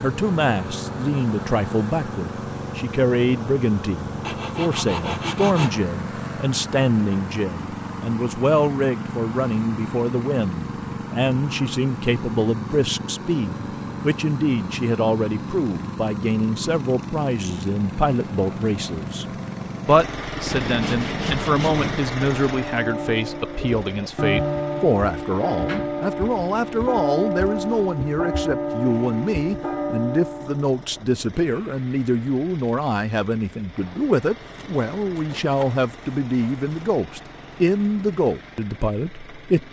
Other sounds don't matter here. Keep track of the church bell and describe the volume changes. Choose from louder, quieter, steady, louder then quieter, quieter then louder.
steady.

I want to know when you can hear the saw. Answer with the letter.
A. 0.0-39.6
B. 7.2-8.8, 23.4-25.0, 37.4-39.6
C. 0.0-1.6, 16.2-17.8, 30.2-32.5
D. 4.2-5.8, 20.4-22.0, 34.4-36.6
D.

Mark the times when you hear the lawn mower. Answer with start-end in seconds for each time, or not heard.
0.0-39.6.